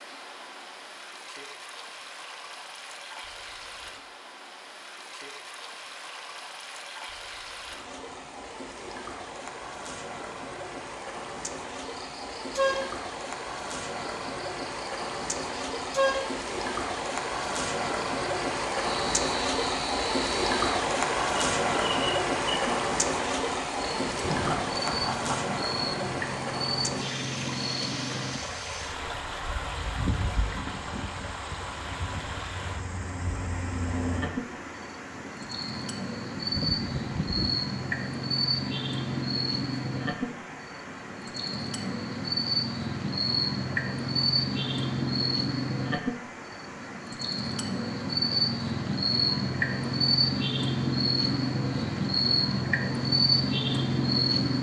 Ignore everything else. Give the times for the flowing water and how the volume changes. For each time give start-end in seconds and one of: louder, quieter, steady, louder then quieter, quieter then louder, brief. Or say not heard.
0.0-54.5 louder then quieter.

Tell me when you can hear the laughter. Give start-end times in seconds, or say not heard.
24.2-25.4, 36.4-37.5.